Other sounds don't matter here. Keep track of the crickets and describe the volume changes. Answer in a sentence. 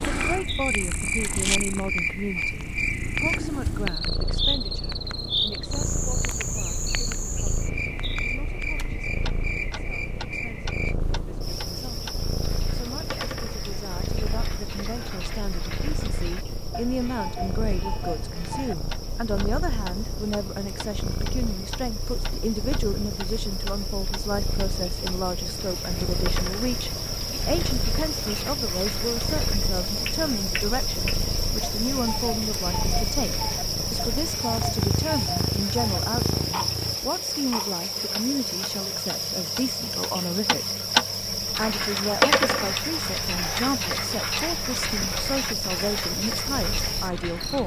The loudness of the crickets goes down, then up.